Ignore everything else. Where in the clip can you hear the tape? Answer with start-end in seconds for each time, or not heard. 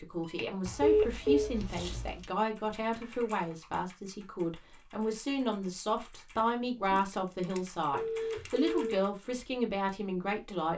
not heard.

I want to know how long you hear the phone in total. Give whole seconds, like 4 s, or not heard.
3 s.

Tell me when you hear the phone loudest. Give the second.
1 s.